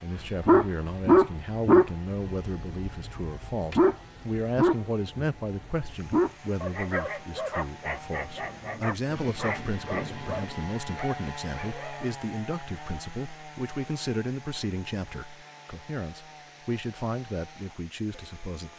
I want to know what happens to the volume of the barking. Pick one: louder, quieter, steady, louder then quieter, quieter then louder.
quieter.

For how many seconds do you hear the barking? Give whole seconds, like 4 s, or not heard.
12 s.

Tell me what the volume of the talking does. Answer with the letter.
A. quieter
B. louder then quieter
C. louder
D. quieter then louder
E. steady
E.